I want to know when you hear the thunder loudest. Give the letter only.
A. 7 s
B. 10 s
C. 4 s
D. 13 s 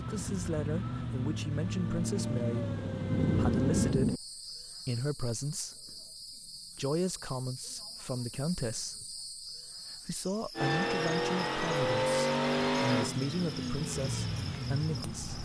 C.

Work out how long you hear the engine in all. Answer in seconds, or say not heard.
9 s.